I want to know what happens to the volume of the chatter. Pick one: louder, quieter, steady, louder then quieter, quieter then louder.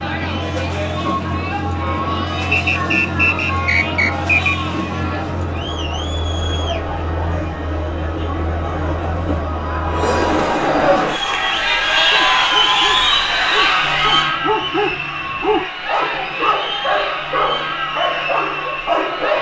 louder then quieter.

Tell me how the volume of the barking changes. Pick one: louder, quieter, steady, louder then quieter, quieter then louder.
louder.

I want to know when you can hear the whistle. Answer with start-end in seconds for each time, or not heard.
2.5-4.5.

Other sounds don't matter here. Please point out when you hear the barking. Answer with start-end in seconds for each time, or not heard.
11.2-19.3.